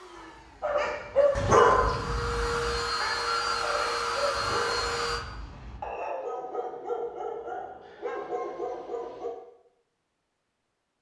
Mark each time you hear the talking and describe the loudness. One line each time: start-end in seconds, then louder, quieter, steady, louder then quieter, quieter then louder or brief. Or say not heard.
not heard.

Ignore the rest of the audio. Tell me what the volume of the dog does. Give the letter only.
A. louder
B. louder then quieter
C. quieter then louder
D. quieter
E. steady
D.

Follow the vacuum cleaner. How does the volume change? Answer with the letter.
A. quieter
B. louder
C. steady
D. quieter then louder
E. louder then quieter
B.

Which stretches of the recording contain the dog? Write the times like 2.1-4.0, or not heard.
0.1-9.3.